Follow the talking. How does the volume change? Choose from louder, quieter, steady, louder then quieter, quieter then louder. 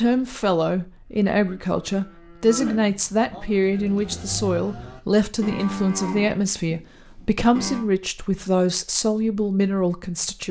steady.